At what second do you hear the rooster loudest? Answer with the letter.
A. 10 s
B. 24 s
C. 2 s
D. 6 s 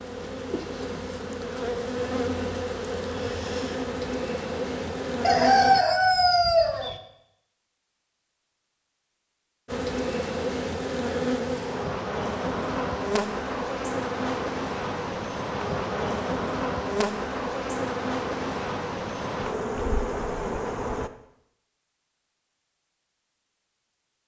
D.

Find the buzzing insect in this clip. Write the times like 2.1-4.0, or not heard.
0.0-5.8, 9.7-21.1.